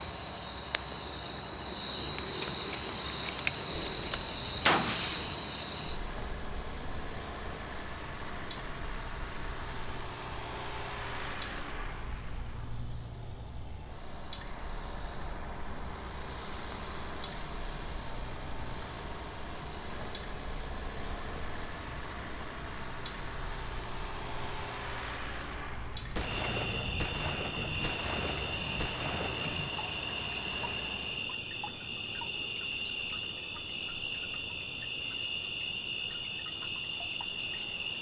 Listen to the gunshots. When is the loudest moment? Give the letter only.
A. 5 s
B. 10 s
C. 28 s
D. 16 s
A.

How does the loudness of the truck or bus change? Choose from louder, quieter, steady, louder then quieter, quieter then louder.
steady.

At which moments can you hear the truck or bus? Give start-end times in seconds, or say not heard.
0.0-31.4.